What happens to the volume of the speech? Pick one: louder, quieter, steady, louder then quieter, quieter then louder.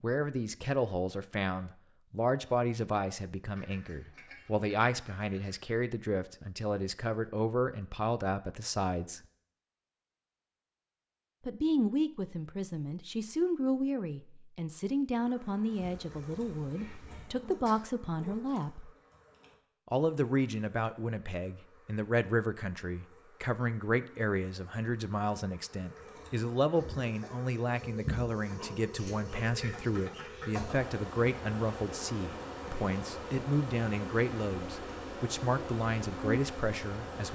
steady.